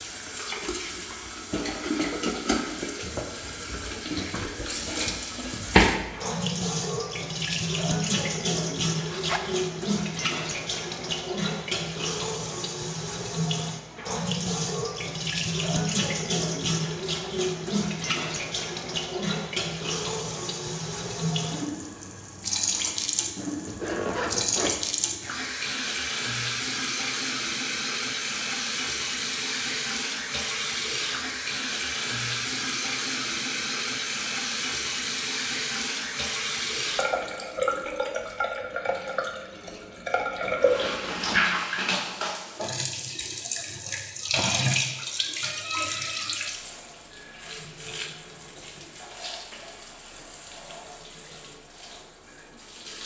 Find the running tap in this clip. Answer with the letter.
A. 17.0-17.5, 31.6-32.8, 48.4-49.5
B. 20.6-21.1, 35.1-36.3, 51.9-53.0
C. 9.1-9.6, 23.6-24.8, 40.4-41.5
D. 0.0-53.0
D.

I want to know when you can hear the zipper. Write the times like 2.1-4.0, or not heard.
9.1-9.6, 23.6-24.8, 40.4-41.5.